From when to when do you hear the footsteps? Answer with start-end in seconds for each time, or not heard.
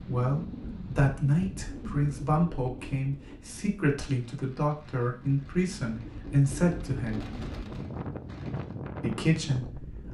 not heard.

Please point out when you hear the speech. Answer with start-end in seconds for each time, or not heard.
0.1-7.2, 9.0-10.0.